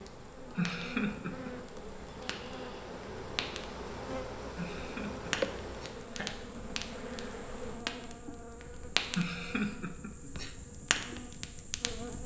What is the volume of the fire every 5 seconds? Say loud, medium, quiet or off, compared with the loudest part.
medium, loud, loud.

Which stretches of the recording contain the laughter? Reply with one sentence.
You can hear the laughter from 0.6 to 1.5 s, from 4.5 to 6.3 s and from 9.1 to 10.6 s.